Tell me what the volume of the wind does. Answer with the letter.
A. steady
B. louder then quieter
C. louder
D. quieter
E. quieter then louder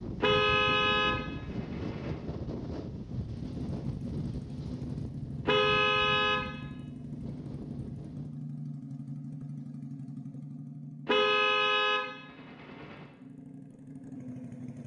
D.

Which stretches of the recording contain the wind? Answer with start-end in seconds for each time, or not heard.
0.0-8.4.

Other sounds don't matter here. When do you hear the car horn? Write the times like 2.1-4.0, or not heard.
0.2-2.1, 5.5-6.5, 11.1-13.1.